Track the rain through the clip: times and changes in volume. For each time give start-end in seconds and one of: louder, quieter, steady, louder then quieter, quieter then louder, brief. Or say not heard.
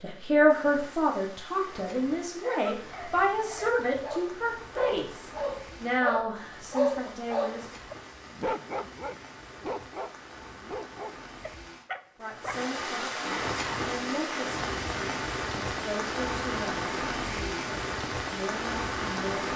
0.0-19.5 louder.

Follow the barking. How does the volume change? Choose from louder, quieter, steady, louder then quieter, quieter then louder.
louder then quieter.